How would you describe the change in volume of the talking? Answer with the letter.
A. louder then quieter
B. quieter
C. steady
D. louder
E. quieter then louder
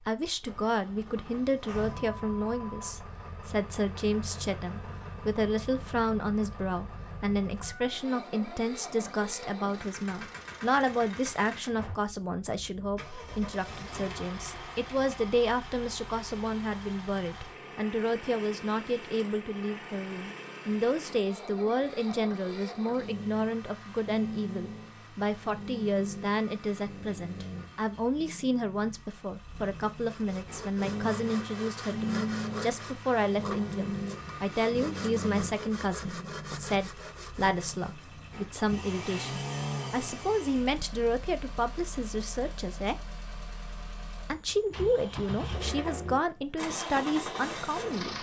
C.